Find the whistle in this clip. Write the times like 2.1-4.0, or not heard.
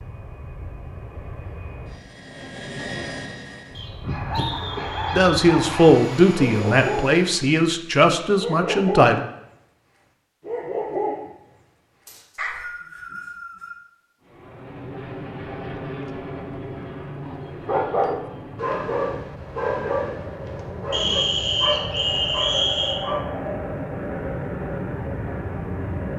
3.8-5.3, 12.1-13.8, 20.9-23.0.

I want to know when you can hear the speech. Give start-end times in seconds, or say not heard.
5.1-9.2.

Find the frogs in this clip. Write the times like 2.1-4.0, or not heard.
not heard.